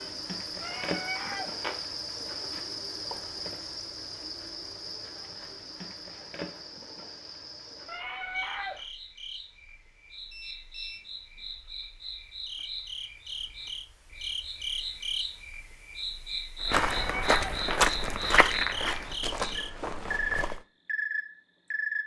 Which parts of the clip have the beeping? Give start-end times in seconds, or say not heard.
10.3-11.1.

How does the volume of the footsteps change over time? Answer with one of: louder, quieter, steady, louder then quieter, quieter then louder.
quieter.